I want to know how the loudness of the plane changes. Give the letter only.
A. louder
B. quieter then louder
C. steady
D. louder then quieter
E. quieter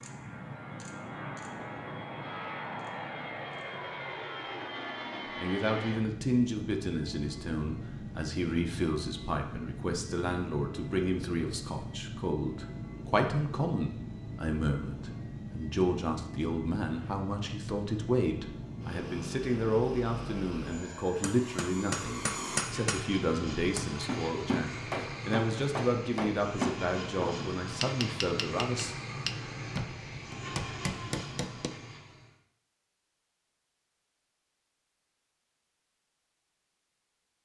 C.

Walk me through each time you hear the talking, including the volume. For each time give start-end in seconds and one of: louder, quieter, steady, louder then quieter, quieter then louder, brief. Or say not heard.
5.3-28.9 steady.